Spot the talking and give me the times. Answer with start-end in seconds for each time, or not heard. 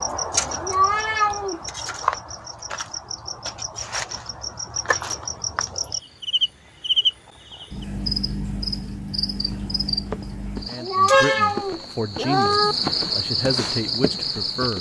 10.7-14.7.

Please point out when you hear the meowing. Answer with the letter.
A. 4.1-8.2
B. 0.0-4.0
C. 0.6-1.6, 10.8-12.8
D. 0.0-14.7
C.